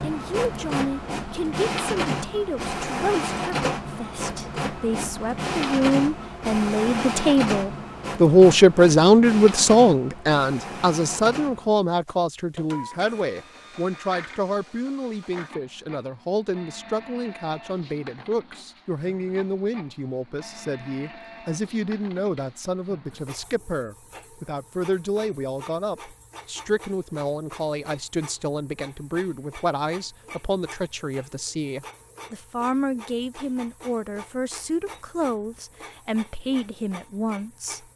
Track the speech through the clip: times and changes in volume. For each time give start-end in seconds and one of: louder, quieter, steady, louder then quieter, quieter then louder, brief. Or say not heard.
0.0-37.9 louder then quieter.